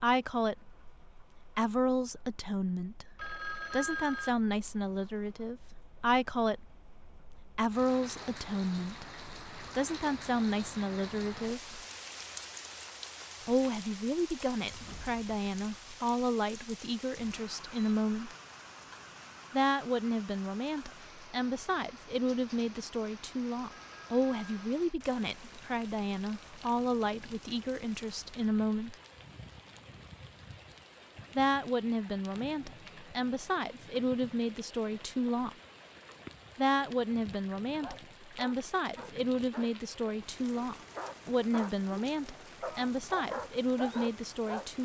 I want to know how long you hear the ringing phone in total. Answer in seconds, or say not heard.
2 s.